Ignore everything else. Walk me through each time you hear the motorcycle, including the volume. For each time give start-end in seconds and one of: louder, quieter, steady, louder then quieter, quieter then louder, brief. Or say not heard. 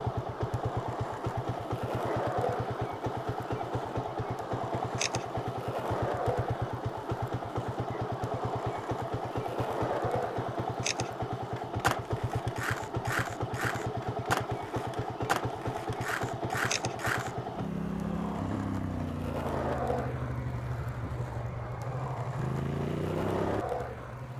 0.0-24.3 steady.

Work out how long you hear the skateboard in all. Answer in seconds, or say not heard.
24 s.